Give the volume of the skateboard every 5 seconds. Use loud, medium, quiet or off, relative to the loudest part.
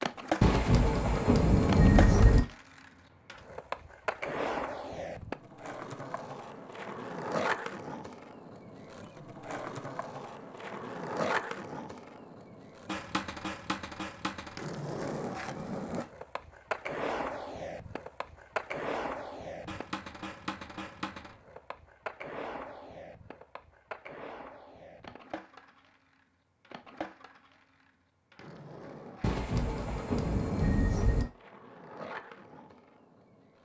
loud, loud, loud, loud, medium, quiet, quiet.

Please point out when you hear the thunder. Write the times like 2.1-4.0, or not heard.
0.4-2.4, 29.2-31.2.